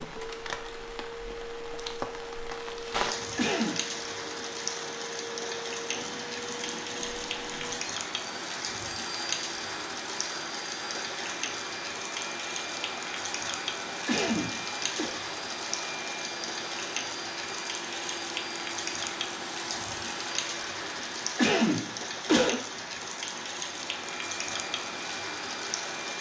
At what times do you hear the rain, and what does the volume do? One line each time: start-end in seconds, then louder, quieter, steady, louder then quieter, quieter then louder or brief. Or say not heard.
0.0-26.1 steady.